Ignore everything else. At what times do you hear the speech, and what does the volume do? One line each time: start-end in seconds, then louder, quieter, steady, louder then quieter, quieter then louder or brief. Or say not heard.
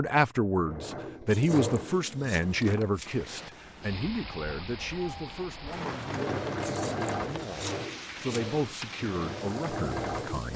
0.0-10.5 quieter then louder.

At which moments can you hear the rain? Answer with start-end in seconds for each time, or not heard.
2.9-10.5.